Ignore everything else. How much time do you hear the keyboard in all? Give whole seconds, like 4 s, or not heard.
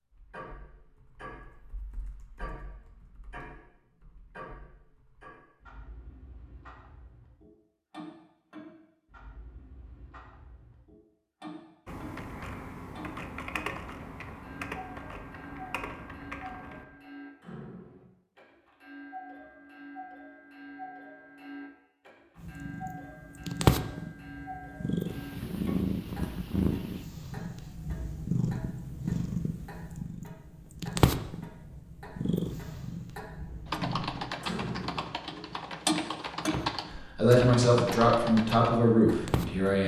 15 s.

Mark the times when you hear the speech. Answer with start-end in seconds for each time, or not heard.
37.1-39.8.